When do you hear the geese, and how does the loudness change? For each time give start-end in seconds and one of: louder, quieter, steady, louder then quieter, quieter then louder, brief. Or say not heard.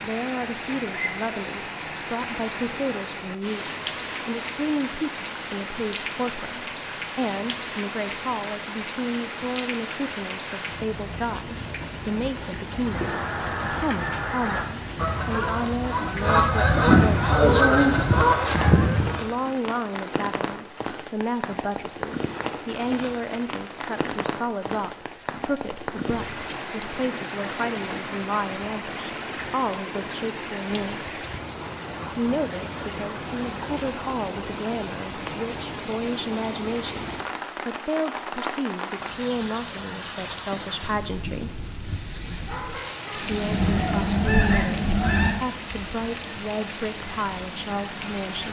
12.8-19.2 louder
43.1-48.4 quieter.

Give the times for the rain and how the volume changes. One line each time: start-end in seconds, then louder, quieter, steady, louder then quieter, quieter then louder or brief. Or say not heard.
0.0-48.4 steady.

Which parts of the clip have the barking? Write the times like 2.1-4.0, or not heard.
41.9-43.8.